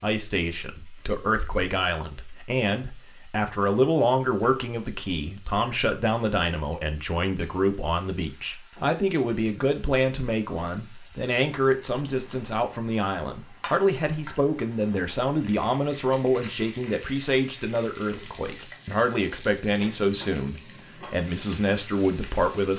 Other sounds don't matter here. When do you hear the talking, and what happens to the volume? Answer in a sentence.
You can hear the talking from 0.0 to 22.7 s, at a steady volume.